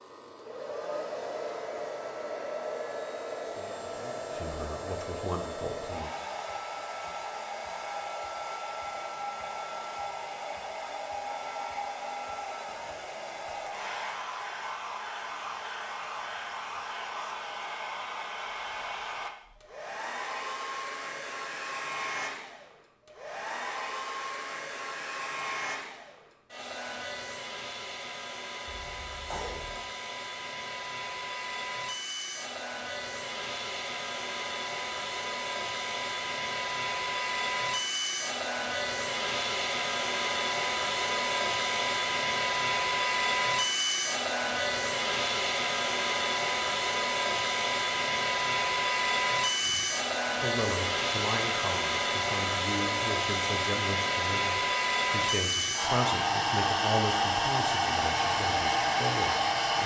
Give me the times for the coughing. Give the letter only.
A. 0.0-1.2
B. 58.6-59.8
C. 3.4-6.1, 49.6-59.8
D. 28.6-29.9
D.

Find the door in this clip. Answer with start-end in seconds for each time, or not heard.
not heard.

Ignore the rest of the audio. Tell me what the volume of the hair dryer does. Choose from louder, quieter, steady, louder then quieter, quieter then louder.
louder.